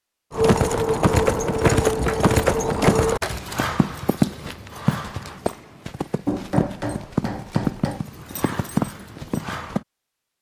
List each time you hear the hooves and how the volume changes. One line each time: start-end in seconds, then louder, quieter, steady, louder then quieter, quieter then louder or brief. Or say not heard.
0.3-9.8 quieter.